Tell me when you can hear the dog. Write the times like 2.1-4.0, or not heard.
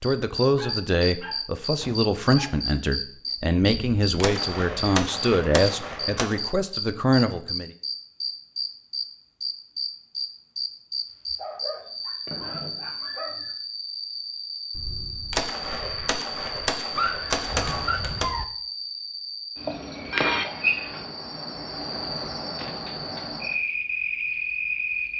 0.6-2.6, 11.3-13.6, 16.9-18.4.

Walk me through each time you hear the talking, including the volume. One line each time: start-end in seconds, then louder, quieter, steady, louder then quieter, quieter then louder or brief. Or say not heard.
0.0-7.7 steady.